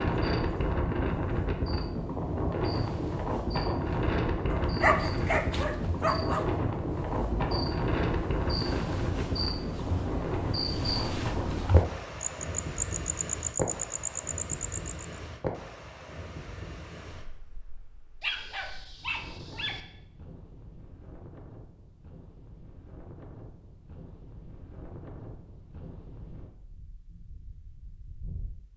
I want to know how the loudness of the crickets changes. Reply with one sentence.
The volume of the crickets goes up.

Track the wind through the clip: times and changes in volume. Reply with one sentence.
The wind can be heard from 0.0 to 28.7 s, getting quieter.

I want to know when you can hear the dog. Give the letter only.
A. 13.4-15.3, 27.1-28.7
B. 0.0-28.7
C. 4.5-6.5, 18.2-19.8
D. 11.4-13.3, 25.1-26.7
C.